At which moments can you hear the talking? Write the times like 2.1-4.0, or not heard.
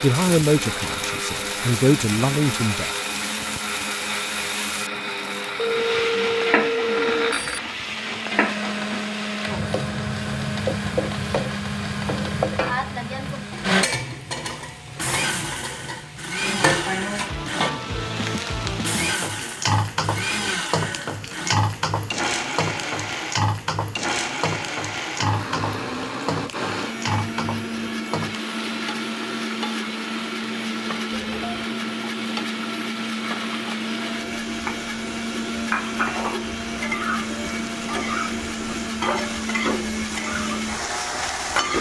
0.0-2.9.